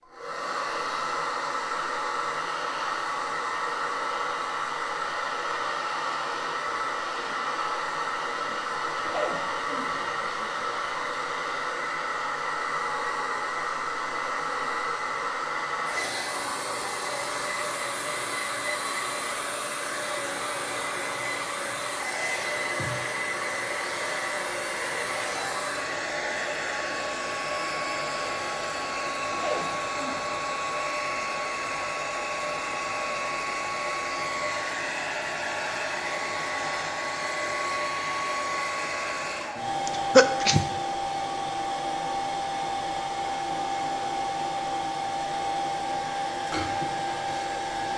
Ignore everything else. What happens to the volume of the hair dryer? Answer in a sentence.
The loudness of the hair dryer stays about the same.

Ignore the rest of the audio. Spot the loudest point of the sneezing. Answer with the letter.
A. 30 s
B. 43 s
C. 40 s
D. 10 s
C.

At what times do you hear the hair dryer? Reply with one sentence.
You can hear the hair dryer from 0.0 to 47.9 s.